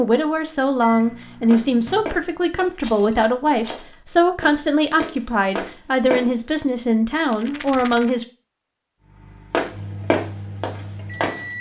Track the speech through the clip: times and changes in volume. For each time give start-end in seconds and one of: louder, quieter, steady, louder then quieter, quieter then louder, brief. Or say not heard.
0.0-8.2 steady.